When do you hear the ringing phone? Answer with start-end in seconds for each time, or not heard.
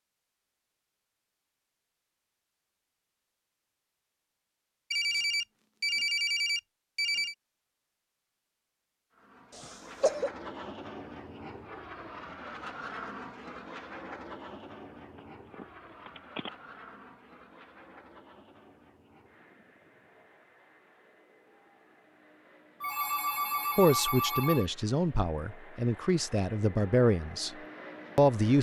4.9-7.3, 15.2-16.5, 22.8-24.6.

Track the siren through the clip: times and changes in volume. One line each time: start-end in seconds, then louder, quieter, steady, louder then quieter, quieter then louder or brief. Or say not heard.
not heard.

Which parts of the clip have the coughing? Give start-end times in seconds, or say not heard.
9.6-10.3.